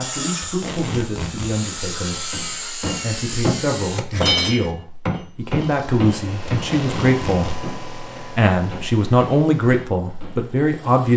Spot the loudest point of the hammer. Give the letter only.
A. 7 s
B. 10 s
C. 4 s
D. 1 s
C.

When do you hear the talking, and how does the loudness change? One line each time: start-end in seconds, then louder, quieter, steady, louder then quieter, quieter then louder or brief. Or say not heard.
0.0-11.1 louder.